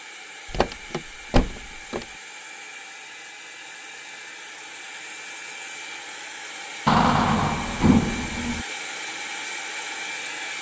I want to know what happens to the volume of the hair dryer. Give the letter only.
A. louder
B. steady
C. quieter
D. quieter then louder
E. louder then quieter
A.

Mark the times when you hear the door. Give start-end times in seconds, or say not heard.
0.5-2.0, 6.8-8.7.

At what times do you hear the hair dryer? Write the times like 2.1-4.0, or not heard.
0.0-10.5.